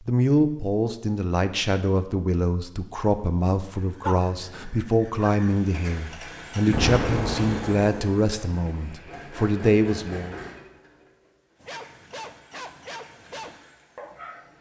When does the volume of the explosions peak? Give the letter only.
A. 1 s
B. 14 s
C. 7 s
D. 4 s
C.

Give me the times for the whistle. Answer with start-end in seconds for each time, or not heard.
not heard.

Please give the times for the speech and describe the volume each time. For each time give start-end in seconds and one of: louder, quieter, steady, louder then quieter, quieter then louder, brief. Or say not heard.
0.1-10.3 steady.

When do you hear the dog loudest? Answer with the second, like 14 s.
4 s.